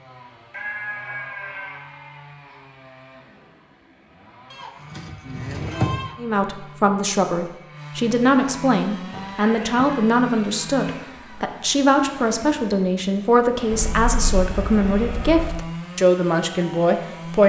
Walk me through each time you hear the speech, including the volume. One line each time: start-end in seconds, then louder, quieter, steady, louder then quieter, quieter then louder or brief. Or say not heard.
6.2-17.4 steady.